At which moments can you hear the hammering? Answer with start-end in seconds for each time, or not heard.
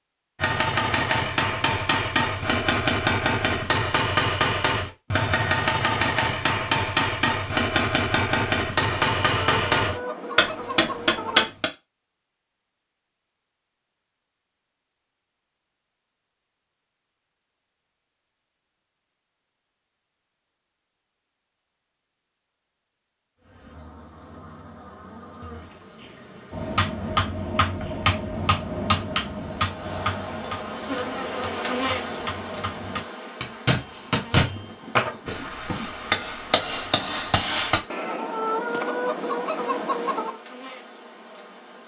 0.4-11.7, 26.5-37.8.